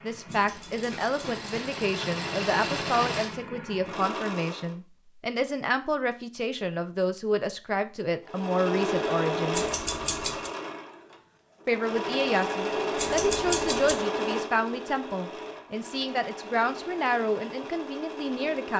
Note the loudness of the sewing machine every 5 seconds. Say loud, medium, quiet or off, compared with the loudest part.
medium, loud, loud, medium.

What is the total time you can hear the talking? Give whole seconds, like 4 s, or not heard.
17 s.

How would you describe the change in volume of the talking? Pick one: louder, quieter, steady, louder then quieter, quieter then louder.
steady.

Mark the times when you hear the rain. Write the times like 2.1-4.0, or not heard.
not heard.